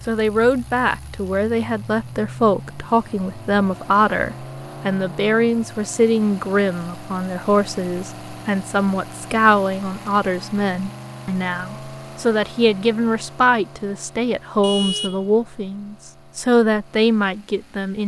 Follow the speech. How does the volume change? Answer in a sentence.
The volume of the speech stays about the same.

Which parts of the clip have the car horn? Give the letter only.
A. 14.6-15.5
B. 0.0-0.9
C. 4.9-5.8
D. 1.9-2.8
A.